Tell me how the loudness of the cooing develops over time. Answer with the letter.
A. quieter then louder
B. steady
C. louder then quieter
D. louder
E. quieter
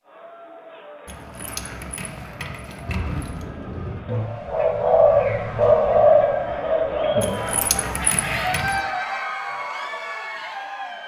C.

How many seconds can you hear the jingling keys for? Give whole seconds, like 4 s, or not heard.
4 s.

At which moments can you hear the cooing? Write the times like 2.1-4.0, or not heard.
2.8-8.7.